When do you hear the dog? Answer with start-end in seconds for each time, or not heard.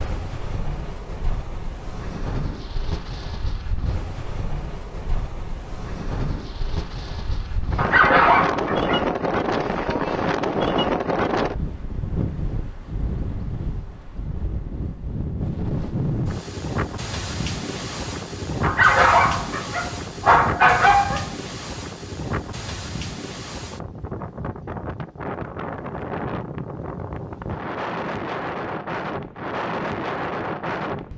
7.8-9.1, 18.6-21.3.